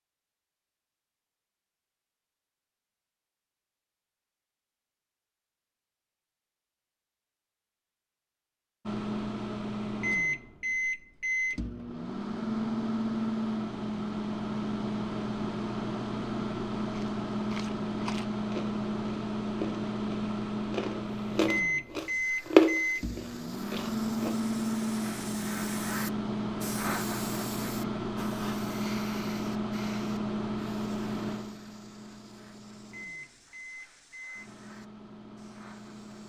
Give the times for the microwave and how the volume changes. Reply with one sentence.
You can hear the microwave from 8.8 to 36.2 s, getting quieter.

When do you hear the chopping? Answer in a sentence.
The chopping can't be heard in this clip.